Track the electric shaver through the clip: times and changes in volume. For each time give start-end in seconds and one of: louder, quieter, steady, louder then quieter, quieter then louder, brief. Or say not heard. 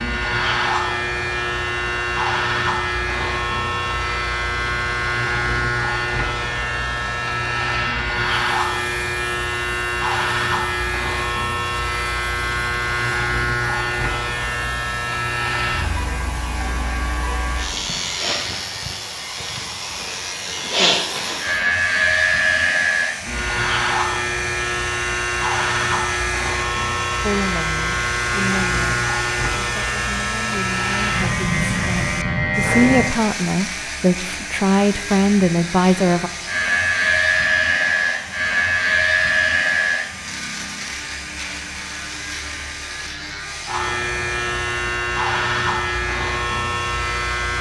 0.0-47.5 steady.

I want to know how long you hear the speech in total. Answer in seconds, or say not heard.
9 s.